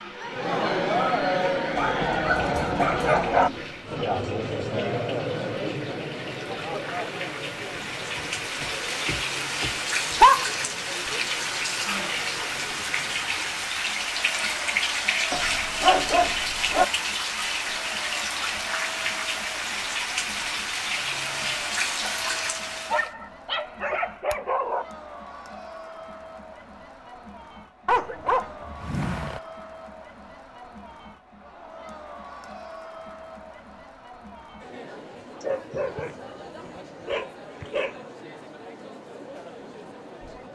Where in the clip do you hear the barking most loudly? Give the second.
10 s.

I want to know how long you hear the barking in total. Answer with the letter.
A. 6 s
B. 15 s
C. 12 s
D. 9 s
C.